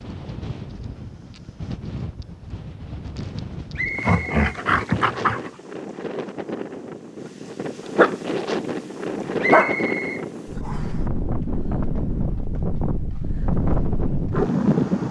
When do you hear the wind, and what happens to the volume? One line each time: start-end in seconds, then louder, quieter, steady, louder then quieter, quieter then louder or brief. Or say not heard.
0.0-15.0 louder.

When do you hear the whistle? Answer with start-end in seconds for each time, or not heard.
3.8-4.3, 9.4-10.9.